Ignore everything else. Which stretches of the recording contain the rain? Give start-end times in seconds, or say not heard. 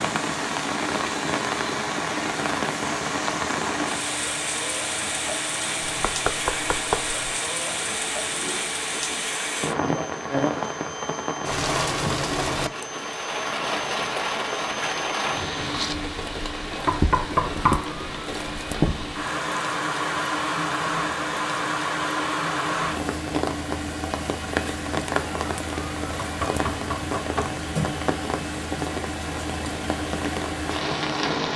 0.0-31.5.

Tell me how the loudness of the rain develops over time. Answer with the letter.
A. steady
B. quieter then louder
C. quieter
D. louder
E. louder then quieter
A.